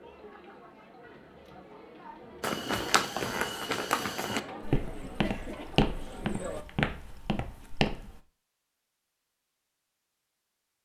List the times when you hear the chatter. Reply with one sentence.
You can hear the chatter from 0.0 to 6.7 s.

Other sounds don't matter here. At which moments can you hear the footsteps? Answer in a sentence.
You can hear the footsteps from 2.4 to 8.2 s.